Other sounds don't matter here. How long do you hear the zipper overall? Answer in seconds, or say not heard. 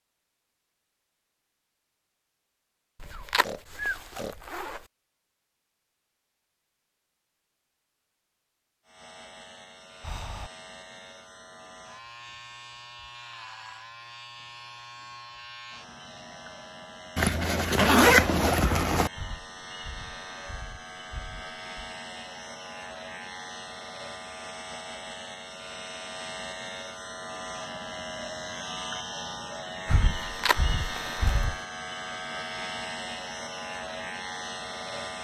5 s.